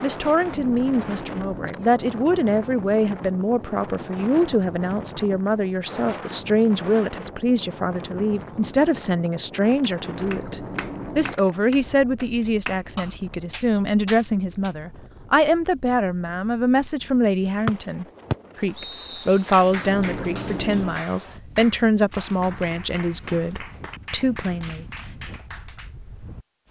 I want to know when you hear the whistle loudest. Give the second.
18 s.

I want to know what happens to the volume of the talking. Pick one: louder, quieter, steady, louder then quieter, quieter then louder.
steady.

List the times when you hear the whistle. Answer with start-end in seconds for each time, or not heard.
17.6-19.4.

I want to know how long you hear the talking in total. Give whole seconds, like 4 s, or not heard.
25 s.